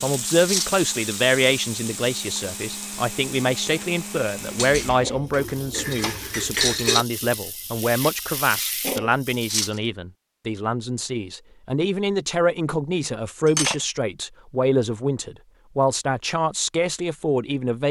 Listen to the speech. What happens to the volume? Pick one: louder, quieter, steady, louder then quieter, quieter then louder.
steady.